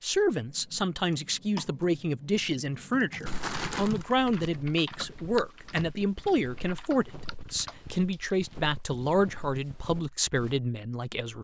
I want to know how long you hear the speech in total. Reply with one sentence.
The speech can be heard for 11 seconds in total.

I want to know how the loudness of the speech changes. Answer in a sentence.
The loudness of the speech stays about the same.